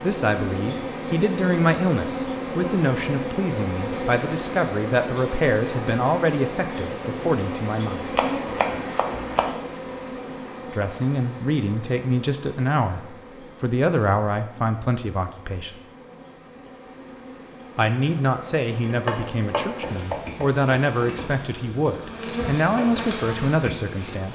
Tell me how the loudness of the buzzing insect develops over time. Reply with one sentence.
The volume of the buzzing insect goes down, then up.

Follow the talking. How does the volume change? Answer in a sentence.
The volume of the talking stays about the same.